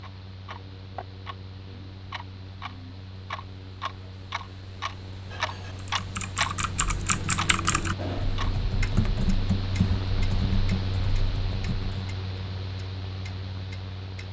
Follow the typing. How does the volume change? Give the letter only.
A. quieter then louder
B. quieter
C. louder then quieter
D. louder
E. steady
B.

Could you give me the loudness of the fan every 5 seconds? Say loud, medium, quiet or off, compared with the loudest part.
medium, loud, loud.